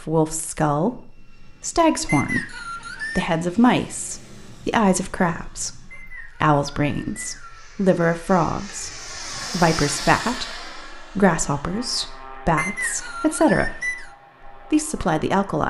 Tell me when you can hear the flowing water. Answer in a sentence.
You can't hear the flowing water here.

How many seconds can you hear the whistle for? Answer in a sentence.
You can hear the whistle for 5 seconds altogether.